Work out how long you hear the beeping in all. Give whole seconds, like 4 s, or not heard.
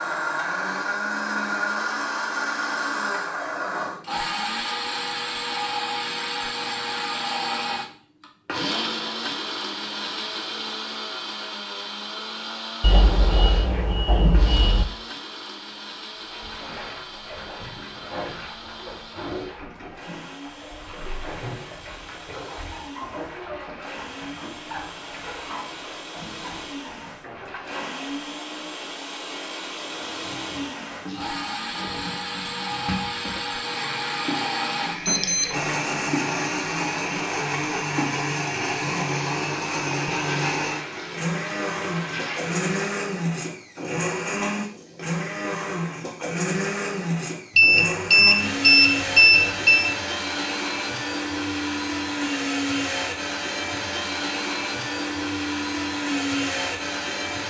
5 s.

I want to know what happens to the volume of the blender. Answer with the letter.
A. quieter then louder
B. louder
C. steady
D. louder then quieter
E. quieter
A.